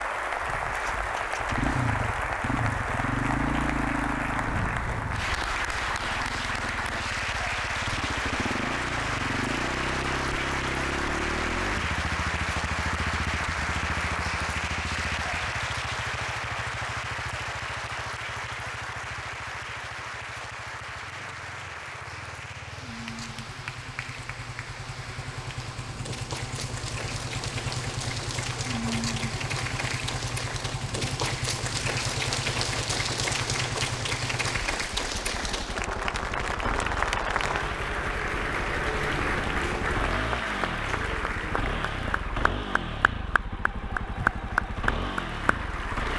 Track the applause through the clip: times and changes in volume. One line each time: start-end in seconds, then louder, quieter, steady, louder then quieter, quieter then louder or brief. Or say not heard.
0.0-46.1 quieter then louder.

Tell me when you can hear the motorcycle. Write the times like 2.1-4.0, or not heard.
0.2-46.1.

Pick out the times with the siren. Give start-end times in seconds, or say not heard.
not heard.